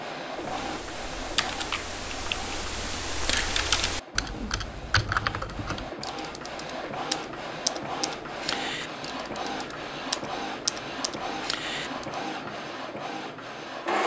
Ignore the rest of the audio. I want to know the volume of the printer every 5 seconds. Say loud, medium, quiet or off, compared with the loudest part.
medium, loud, loud.